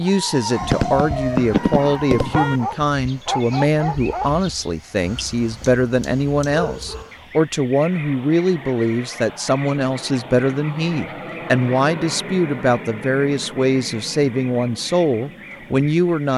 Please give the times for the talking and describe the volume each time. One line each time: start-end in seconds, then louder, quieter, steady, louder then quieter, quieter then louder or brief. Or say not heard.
0.0-16.3 steady.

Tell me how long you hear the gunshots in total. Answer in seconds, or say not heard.
2 s.